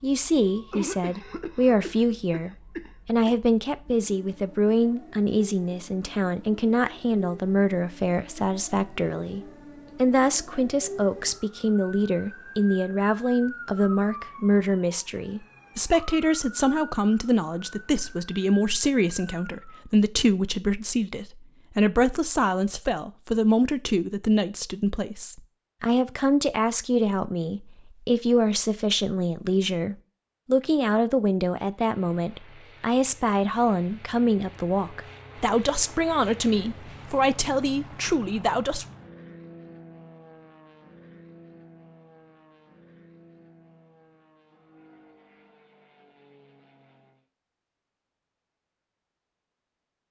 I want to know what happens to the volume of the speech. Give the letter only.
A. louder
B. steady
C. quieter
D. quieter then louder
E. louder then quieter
B.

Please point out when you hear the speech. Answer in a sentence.
You can hear the speech from 0.0 to 38.9 s.